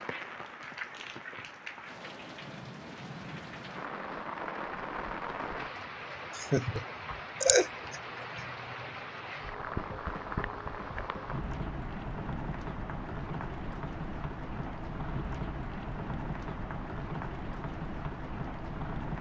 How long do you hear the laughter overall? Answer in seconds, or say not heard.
2 s.